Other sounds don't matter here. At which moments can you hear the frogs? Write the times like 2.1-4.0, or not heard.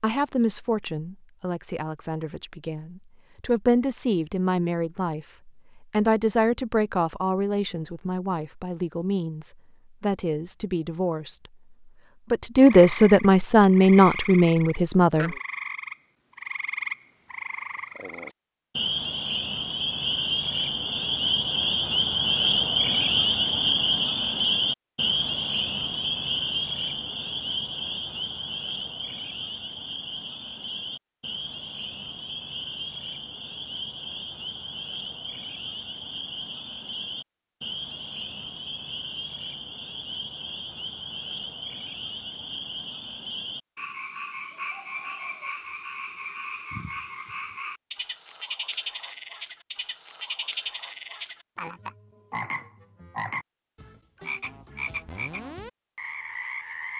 12.6-56.9.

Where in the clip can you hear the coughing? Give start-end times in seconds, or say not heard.
not heard.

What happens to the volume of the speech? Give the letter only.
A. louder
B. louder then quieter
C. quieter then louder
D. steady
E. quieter
A.